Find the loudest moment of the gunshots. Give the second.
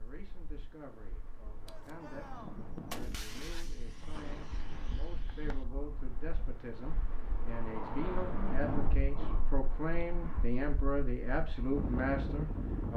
3 s.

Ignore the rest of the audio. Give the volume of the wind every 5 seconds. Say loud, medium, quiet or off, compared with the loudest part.
quiet, loud, loud.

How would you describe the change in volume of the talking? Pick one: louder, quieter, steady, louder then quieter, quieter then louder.
louder.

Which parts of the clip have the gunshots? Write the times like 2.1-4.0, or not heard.
1.6-5.7.